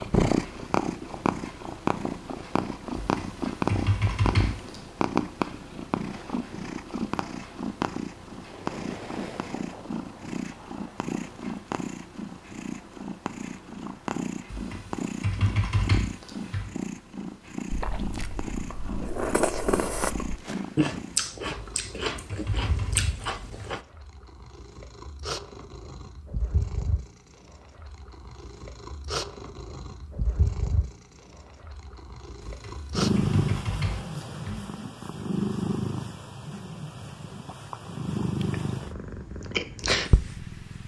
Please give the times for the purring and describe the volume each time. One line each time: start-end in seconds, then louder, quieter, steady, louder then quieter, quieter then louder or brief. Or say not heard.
0.0-40.8 quieter then louder.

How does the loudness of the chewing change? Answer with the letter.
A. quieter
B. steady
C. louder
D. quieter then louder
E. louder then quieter
E.